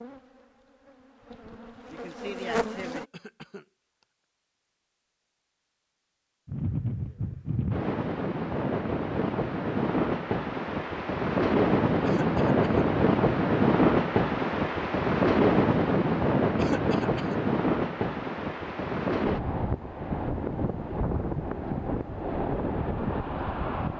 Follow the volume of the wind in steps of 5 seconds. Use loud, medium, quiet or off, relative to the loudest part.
off, medium, loud, loud, medium.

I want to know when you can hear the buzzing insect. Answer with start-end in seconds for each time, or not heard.
0.0-3.0.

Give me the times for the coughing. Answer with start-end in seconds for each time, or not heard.
2.8-3.6, 12.1-12.8, 16.6-17.4.